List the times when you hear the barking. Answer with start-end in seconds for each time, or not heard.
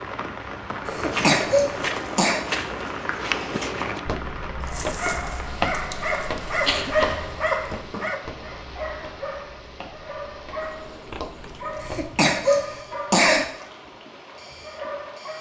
4.6-15.3.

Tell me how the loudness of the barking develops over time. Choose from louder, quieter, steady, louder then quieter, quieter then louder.
quieter.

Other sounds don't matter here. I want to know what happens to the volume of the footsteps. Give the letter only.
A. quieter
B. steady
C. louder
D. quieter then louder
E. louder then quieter
A.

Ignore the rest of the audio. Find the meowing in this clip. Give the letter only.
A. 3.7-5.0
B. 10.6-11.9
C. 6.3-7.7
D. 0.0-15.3
B.